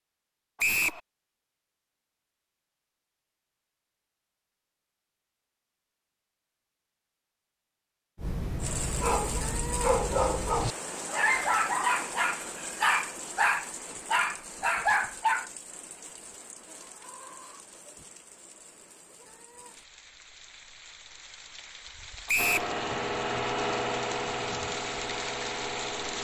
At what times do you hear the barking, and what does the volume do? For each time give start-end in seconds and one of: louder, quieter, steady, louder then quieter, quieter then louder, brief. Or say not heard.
8.2-15.5 louder.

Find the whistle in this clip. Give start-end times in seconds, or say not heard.
0.6-1.0, 22.2-22.7.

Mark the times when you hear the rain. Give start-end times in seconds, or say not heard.
8.6-26.1.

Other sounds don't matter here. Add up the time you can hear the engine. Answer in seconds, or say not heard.
4 s.